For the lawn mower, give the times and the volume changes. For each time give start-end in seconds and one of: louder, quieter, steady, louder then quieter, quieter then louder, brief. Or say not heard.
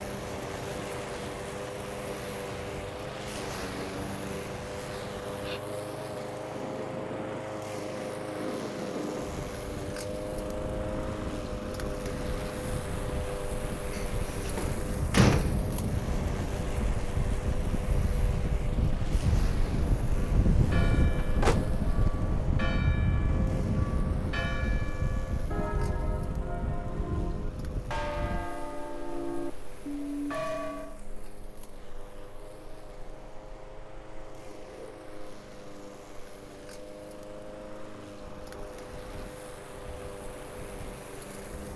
0.0-41.7 quieter.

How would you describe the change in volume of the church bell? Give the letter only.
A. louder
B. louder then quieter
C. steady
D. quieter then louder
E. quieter
A.